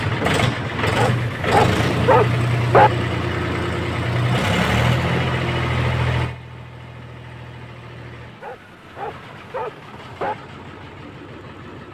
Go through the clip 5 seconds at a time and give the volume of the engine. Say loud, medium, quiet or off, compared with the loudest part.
loud, medium, quiet.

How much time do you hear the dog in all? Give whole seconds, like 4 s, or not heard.
4 s.